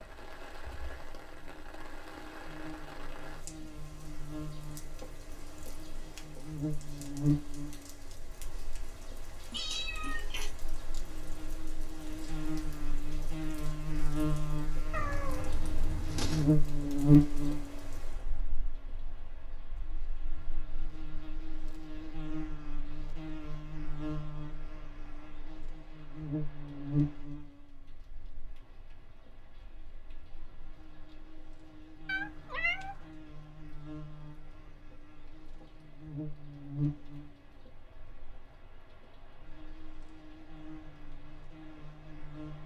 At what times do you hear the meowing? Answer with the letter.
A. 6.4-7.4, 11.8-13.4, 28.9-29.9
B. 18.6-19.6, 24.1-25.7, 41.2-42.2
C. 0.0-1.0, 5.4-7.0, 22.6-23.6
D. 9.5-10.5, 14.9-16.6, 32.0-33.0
D.